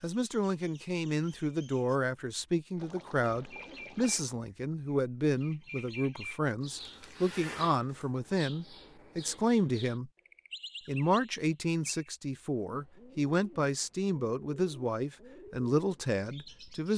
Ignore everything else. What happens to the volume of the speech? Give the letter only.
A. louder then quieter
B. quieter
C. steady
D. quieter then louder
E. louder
C.